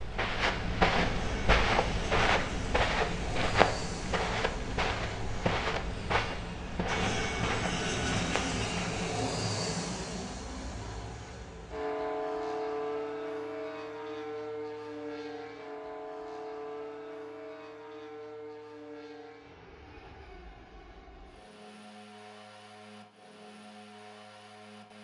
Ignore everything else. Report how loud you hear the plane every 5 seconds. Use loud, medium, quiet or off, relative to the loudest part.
medium, loud, loud, medium, quiet.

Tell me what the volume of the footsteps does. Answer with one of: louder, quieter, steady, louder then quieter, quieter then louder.
quieter.